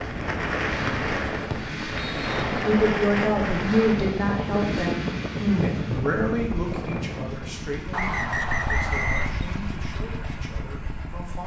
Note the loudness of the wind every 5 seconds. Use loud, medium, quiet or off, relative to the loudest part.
loud, loud, off.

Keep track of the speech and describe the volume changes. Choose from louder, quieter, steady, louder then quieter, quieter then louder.
quieter.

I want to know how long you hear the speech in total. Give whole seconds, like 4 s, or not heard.
9 s.